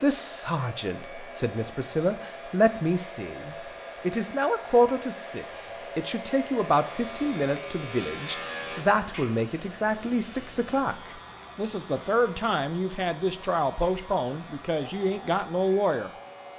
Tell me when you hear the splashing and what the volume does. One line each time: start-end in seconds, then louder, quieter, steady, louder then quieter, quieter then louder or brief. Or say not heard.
not heard.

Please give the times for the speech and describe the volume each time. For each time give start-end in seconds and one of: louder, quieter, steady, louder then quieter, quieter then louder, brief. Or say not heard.
0.0-16.1 steady.